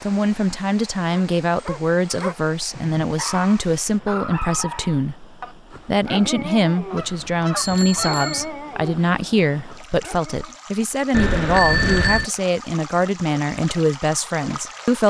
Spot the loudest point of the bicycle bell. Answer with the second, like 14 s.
12 s.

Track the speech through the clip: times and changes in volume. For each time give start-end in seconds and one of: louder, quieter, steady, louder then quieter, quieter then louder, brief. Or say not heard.
0.0-15.0 steady.